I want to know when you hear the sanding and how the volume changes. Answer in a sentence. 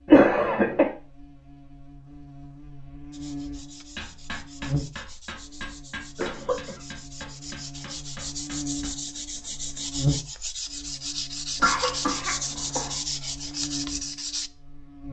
The sanding can be heard from 3.1 to 14.5 s, getting louder.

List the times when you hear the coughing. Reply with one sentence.
The coughing can be heard from 0.1 to 0.9 s, from 6.2 to 6.8 s and from 11.6 to 12.9 s.